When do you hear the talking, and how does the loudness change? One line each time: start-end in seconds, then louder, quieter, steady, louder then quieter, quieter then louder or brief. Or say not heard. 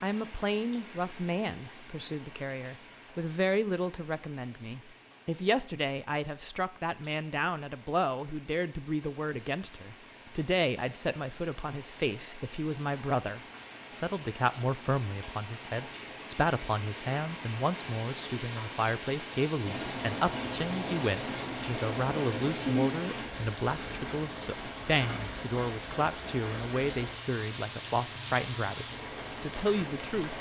0.0-30.3 steady.